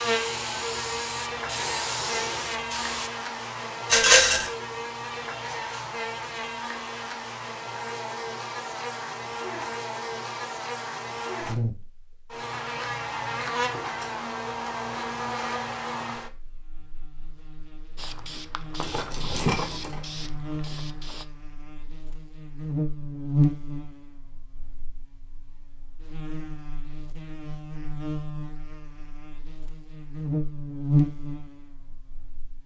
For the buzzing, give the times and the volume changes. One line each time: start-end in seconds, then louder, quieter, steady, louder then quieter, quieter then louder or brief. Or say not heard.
0.0-32.6 steady.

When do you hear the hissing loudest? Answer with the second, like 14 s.
2 s.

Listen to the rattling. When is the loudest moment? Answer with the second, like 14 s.
4 s.